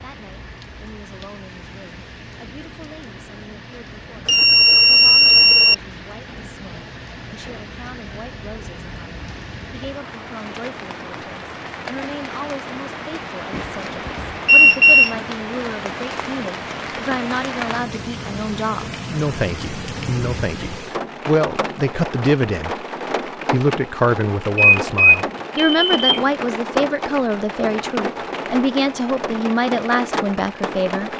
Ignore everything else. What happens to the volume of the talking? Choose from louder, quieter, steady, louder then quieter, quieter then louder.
louder.